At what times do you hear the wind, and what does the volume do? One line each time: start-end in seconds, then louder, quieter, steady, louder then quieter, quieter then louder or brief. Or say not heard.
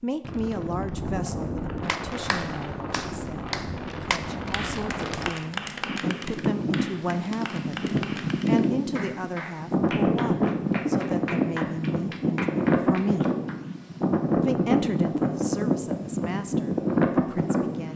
0.2-17.9 louder.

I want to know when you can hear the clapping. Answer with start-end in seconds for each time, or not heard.
1.9-13.6.